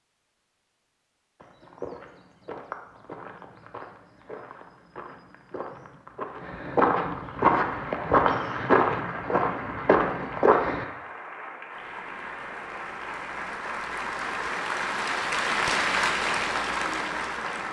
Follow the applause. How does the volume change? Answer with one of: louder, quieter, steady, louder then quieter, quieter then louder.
louder.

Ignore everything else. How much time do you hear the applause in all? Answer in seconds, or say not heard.
10 s.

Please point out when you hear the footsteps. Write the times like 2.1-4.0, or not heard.
1.4-10.8.